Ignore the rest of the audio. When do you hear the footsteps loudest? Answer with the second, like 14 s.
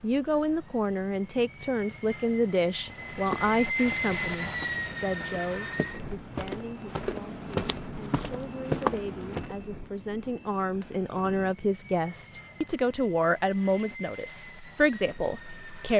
9 s.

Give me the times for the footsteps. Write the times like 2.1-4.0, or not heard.
2.9-9.6.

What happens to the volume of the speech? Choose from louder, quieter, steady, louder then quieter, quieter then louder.
quieter then louder.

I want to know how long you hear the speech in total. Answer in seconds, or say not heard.
16 s.